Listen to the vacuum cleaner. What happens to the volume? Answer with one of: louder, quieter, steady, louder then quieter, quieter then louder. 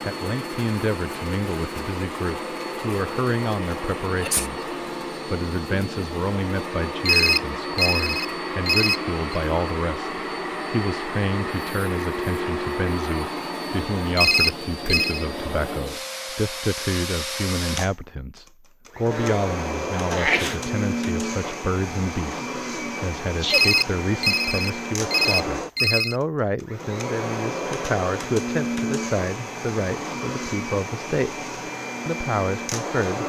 steady.